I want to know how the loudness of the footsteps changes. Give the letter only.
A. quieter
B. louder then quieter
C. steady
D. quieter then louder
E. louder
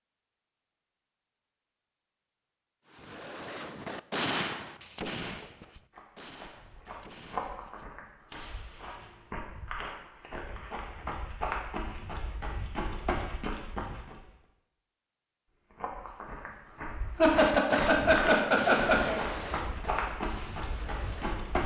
E.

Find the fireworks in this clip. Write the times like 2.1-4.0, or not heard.
2.9-10.1, 17.2-21.6.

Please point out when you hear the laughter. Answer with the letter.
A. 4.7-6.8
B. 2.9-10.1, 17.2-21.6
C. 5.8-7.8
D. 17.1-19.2
D.